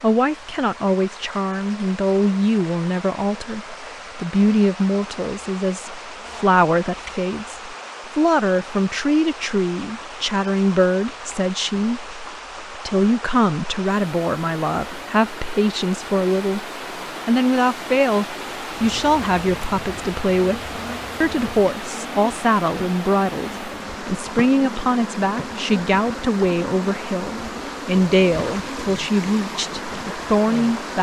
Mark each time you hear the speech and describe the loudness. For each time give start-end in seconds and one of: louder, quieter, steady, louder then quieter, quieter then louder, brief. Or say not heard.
0.0-16.6 steady
17.2-30.9 steady.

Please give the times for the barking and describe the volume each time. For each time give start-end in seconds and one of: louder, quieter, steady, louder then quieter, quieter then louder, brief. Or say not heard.
not heard.